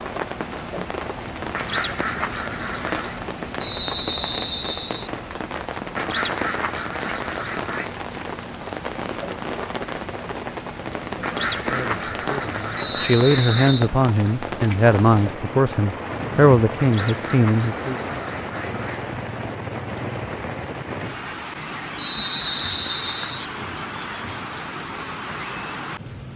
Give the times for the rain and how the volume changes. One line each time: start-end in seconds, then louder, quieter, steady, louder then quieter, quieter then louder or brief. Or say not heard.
0.0-26.3 steady.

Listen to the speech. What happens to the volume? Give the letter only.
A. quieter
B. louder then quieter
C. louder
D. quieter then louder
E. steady
C.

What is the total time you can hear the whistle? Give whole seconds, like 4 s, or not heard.
4 s.